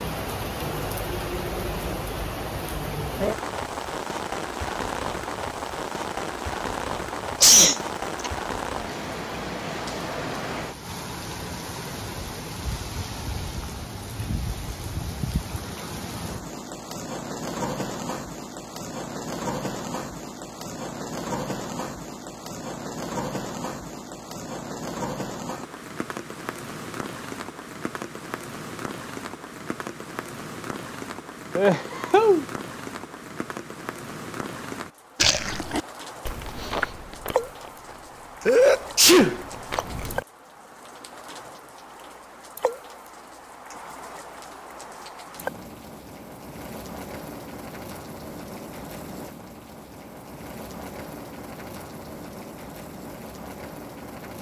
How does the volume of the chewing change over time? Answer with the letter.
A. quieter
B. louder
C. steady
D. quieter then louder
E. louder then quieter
D.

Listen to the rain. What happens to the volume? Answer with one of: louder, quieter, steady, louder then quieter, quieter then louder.
quieter.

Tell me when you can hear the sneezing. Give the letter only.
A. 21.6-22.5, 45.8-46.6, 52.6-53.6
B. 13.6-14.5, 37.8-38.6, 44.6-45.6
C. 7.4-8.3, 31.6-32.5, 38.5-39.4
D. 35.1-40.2
C.